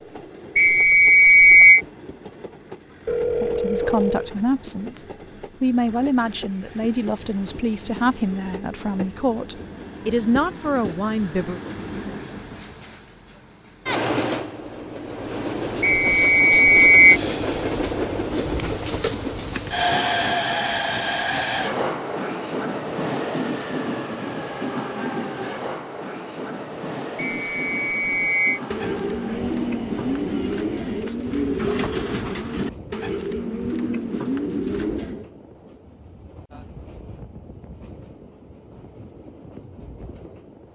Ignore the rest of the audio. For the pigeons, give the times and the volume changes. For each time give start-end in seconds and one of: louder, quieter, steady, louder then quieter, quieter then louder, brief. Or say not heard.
28.7-35.2 steady.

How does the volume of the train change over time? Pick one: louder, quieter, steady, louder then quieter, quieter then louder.
louder then quieter.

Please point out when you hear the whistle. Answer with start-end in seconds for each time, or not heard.
0.6-1.8, 15.8-17.2, 27.1-28.6.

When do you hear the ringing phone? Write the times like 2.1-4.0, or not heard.
3.0-4.3.